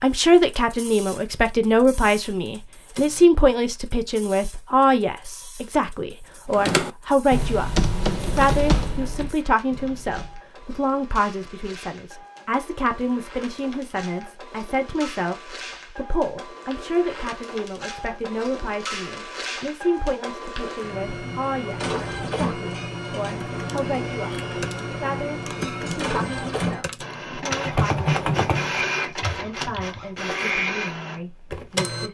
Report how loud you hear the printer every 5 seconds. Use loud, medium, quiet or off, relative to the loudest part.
quiet, quiet, quiet, medium, loud, loud, loud.